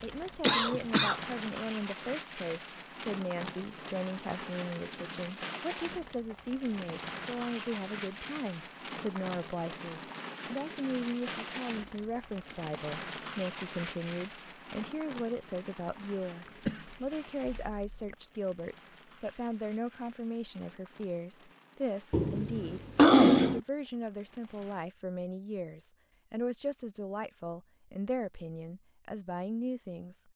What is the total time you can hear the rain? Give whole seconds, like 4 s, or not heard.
25 s.